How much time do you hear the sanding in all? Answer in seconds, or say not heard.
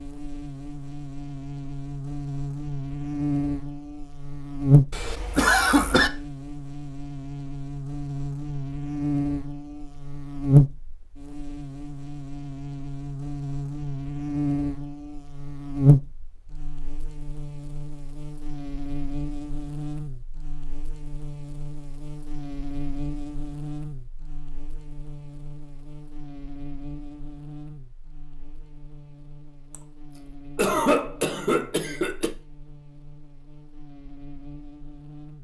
not heard.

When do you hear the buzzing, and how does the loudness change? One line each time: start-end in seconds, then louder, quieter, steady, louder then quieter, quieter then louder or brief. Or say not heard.
0.0-35.4 quieter.